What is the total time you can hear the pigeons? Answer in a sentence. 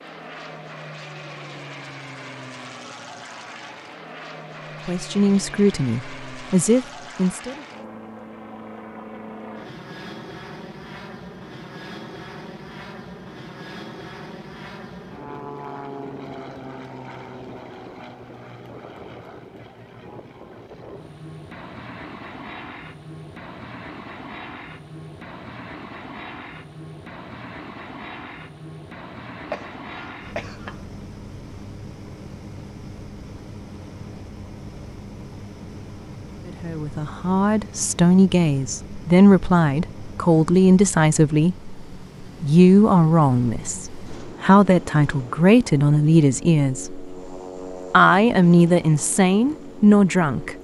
The pigeons can't be heard in this clip.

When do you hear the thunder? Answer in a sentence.
You can't hear the thunder here.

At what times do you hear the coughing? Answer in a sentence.
You can hear the coughing from 29.4 to 30.8 s.